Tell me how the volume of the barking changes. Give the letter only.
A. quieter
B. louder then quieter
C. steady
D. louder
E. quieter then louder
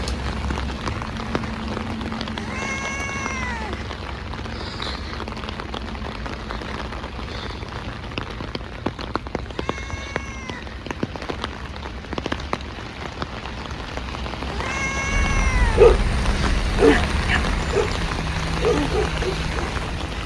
E.